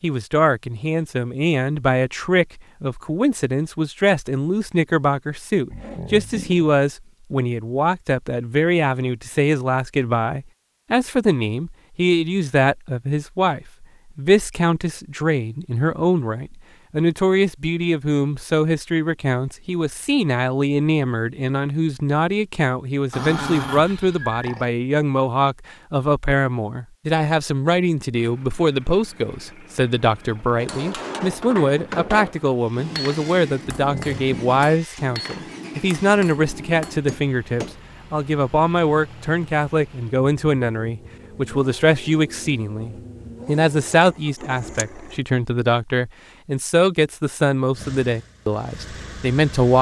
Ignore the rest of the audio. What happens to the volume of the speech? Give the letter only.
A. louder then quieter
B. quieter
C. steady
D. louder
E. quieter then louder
C.